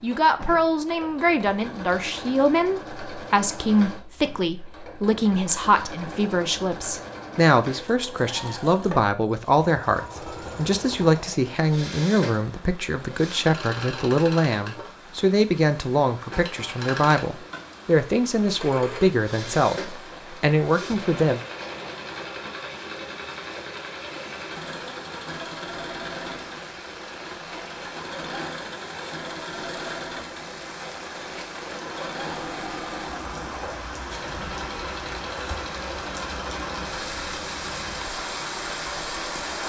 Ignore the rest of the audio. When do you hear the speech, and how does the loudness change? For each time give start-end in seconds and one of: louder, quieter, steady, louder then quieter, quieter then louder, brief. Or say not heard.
0.0-21.4 steady.